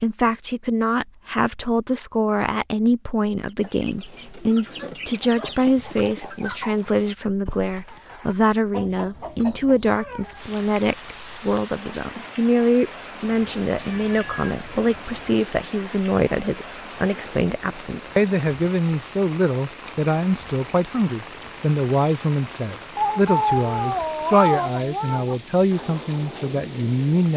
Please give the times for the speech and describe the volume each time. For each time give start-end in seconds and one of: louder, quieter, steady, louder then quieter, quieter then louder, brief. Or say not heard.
0.0-27.3 steady.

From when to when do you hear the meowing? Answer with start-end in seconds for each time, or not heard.
4.8-5.7, 13.3-15.3, 22.9-25.4.